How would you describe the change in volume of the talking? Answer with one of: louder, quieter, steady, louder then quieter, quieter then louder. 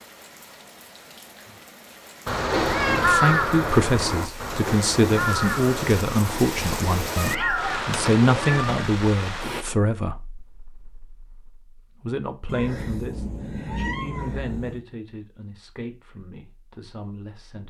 quieter.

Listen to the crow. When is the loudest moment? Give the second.
3 s.